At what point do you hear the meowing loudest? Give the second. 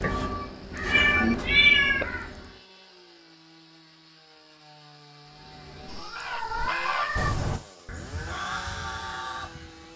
2 s.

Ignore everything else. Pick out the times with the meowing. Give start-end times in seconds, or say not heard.
0.0-2.0, 5.8-7.3.